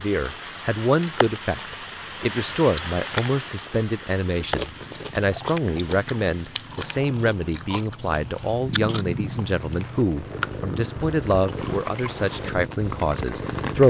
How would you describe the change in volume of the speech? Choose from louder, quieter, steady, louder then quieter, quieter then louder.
steady.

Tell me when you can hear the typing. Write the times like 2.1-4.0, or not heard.
not heard.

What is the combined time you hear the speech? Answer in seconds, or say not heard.
14 s.